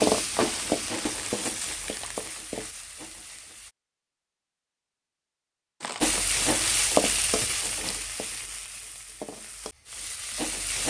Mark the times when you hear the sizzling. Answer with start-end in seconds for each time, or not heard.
0.0-3.8, 6.0-10.8.